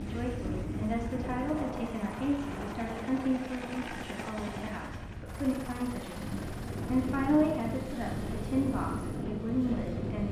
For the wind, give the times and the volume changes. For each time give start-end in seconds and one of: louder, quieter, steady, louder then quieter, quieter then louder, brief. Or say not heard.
0.0-10.2 quieter then louder.